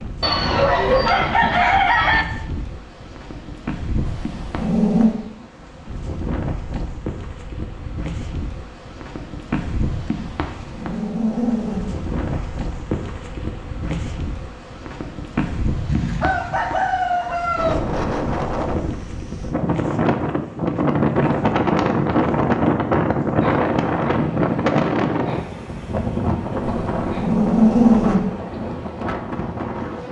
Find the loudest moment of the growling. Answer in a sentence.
The volume of the growling peaks at 28 seconds.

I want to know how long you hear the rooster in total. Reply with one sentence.
You can hear the rooster for 4 seconds altogether.